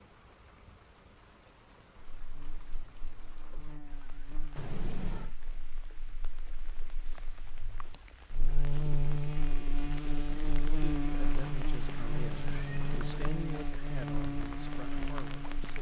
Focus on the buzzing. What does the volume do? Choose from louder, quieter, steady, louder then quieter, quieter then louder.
louder.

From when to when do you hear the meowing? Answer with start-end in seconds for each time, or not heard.
4.5-5.3, 11.8-13.3.